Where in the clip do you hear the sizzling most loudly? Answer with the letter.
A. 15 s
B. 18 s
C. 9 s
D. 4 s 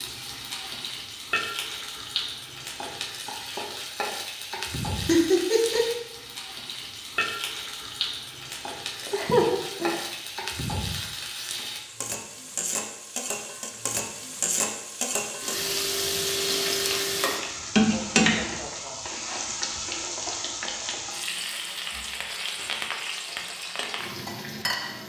B.